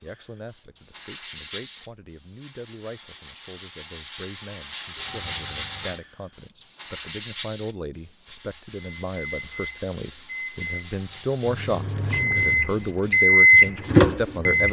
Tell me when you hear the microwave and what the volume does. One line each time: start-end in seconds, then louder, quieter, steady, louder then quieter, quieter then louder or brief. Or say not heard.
8.8-14.6 louder.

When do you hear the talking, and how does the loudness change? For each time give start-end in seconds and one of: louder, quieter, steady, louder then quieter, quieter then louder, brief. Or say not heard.
0.0-14.6 louder.